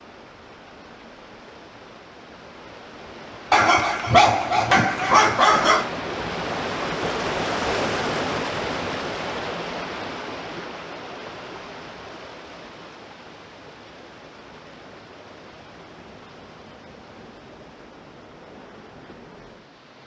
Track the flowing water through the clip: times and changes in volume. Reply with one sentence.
The flowing water can be heard from 0.0 to 20.0 s, getting louder then quieter.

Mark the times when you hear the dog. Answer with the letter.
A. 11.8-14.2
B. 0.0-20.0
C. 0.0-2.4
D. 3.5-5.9
D.